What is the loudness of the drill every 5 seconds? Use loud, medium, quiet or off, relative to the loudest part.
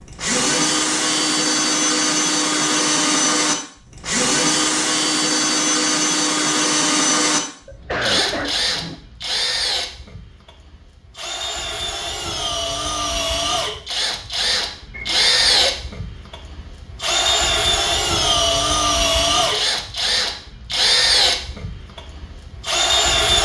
loud, loud, medium, loud, loud.